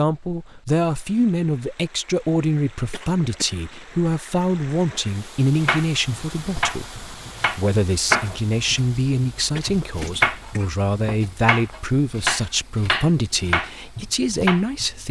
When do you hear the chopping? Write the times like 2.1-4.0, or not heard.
5.5-15.0.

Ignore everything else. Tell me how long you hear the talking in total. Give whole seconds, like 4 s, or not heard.
15 s.